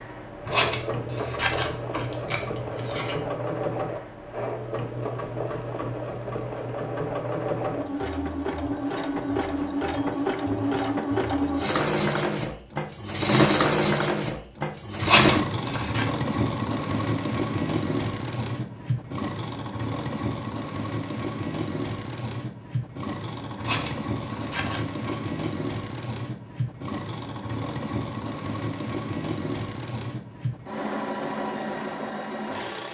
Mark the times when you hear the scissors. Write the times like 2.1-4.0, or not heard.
0.5-3.1, 15.0-16.1, 23.6-25.3.